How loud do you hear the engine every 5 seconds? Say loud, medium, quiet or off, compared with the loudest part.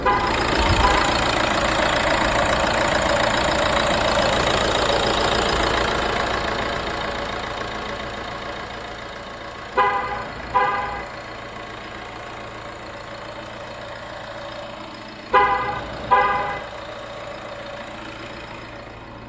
loud, medium, quiet, quiet.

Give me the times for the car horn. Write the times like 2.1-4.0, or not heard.
0.0-1.1, 9.8-11.1, 15.3-16.6.